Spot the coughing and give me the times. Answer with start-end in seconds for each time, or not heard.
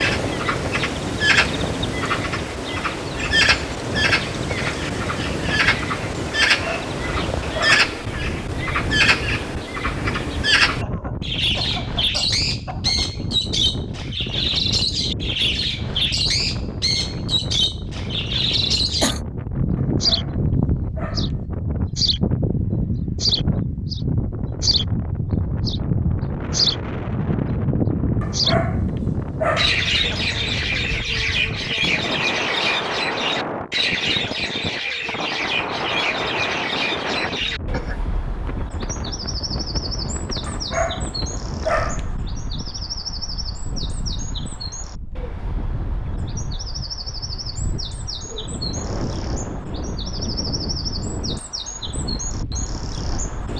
10.8-13.2, 18.5-19.2, 37.0-38.0.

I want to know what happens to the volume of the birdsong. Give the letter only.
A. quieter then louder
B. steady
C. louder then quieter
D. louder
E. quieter
E.